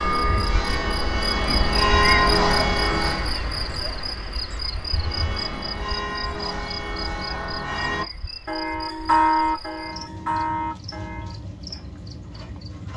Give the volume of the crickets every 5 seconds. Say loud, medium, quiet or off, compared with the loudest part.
loud, medium, medium.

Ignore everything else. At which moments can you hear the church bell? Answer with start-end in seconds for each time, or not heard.
0.0-3.4, 4.8-11.4.